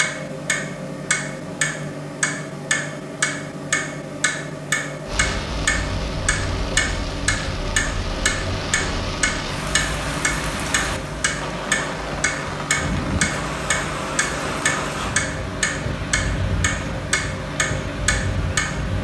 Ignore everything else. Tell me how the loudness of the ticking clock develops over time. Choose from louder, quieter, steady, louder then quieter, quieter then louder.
steady.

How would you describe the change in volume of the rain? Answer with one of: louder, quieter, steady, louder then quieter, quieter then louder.
steady.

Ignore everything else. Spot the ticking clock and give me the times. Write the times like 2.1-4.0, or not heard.
0.0-18.9.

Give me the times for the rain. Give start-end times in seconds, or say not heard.
5.0-18.9.